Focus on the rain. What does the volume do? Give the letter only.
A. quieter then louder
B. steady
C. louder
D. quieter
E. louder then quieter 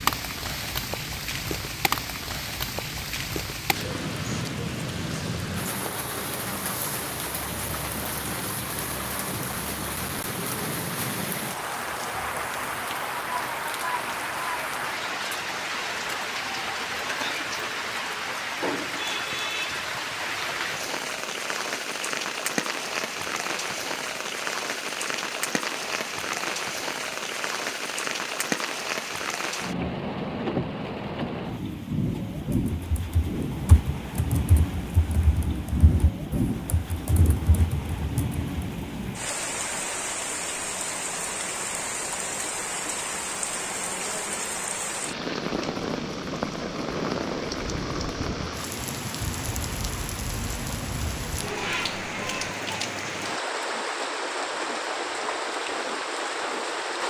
B.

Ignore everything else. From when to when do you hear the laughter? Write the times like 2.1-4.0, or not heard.
not heard.